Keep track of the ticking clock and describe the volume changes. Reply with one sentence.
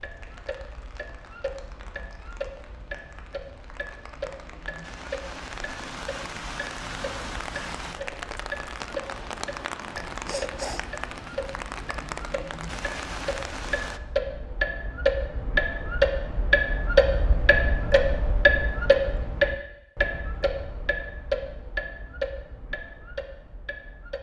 The volume of the ticking clock goes up, then down.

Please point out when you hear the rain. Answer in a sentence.
The rain can be heard from 0.0 to 14.0 s.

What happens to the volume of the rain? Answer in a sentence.
The loudness of the rain goes up.